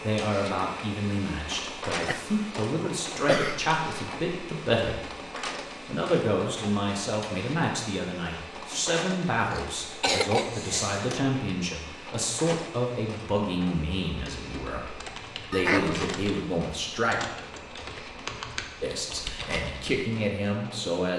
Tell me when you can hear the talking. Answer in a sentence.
The talking can be heard from 0.0 to 5.1 s, from 5.8 to 17.2 s and from 18.8 to 21.1 s.